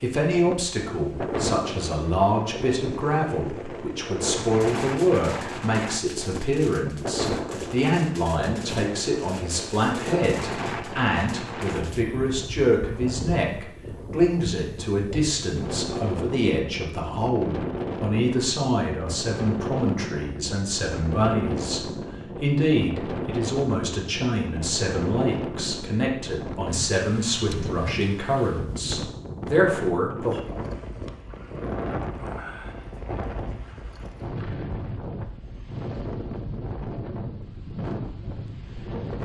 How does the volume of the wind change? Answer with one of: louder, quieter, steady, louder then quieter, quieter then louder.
steady.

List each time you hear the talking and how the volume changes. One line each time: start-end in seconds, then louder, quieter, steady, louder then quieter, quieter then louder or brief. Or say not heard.
0.0-30.4 steady.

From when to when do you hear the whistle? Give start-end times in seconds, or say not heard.
not heard.